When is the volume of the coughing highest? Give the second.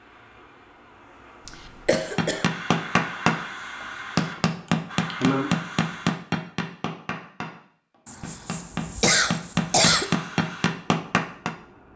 10 s.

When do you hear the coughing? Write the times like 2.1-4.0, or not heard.
1.4-2.5, 4.7-5.5, 8.1-10.1.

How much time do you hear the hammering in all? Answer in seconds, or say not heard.
9 s.